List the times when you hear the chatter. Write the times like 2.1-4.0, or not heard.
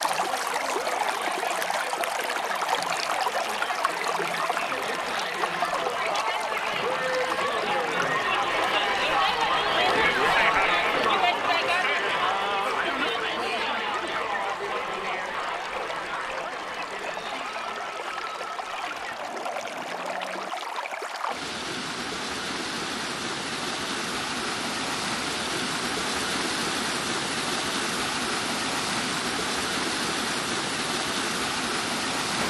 0.0-20.5.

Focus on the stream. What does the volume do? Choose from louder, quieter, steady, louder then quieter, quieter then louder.
quieter then louder.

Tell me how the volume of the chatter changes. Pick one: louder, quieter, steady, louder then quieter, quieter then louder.
louder then quieter.